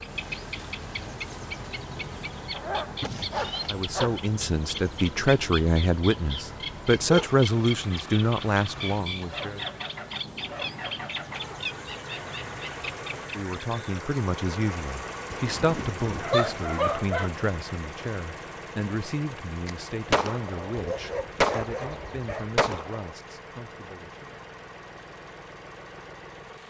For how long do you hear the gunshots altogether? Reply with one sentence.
You can hear the gunshots for 4 seconds altogether.